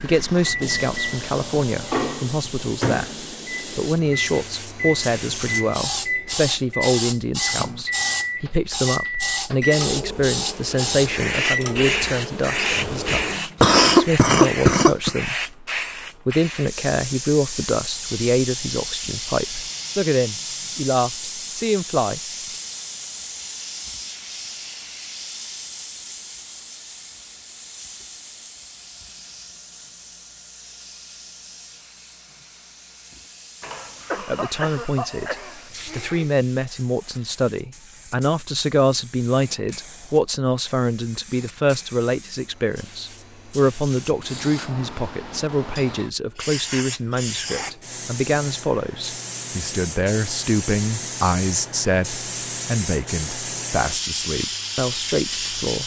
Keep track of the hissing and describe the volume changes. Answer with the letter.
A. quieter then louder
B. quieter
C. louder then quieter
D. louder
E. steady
A.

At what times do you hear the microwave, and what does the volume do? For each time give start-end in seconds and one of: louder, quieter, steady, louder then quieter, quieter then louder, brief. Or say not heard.
0.2-13.7 steady.